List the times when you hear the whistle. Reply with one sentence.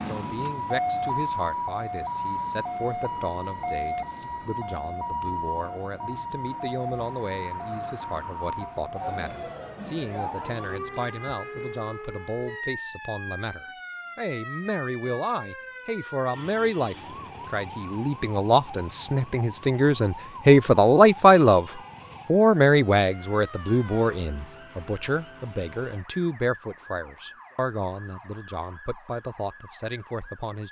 You can't hear the whistle here.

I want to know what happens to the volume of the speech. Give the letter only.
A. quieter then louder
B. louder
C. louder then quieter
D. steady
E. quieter
C.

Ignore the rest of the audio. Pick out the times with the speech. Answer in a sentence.
The speech can be heard from 0.1 to 21.6 s and from 22.2 to 30.6 s.